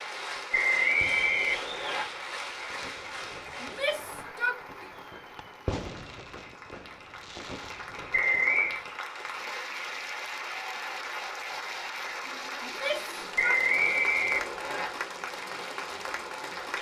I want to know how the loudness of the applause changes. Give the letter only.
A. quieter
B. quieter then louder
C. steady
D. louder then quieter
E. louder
B.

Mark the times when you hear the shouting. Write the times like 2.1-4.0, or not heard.
3.6-4.9, 12.6-13.6.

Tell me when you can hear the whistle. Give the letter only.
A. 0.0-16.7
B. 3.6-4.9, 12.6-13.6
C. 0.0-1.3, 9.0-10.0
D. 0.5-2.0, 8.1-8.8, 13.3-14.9
D.